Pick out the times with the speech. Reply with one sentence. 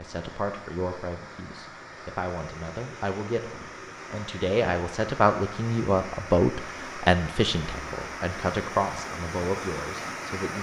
You can hear the speech from 0.0 to 10.5 s.